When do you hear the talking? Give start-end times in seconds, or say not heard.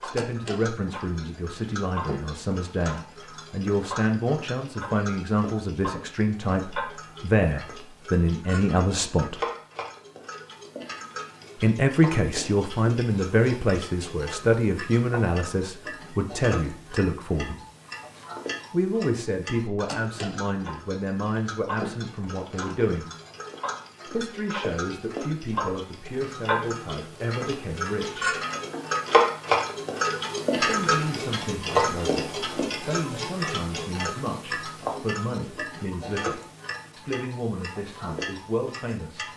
0.0-9.4, 11.6-17.6, 18.7-23.1, 24.1-28.4, 30.6-39.2.